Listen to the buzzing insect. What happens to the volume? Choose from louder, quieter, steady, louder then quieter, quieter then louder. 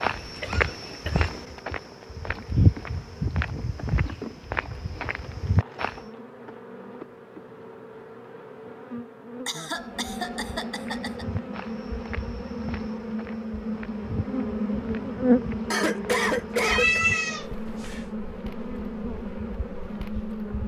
louder then quieter.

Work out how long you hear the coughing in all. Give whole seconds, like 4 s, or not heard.
4 s.